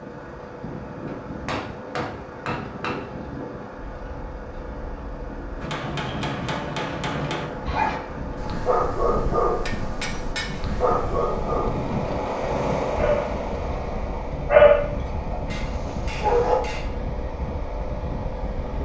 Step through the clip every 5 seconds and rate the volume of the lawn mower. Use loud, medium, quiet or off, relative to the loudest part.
medium, medium, loud, medium.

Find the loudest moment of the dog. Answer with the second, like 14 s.
15 s.